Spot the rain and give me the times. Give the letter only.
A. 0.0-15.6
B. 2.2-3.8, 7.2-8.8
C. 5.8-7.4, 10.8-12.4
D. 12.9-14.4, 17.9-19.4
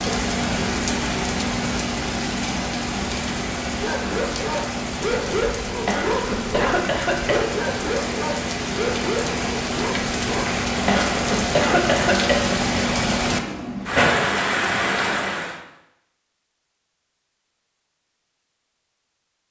A.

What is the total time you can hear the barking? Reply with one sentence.
The barking can be heard for 7 seconds in total.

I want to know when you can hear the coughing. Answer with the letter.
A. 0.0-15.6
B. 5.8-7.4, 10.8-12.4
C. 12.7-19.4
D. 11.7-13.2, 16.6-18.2
B.